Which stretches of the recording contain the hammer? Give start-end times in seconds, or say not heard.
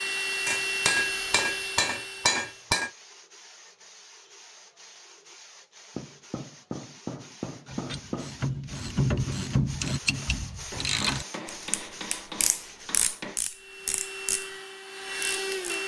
0.5-2.9, 6.0-8.4, 10.7-13.4.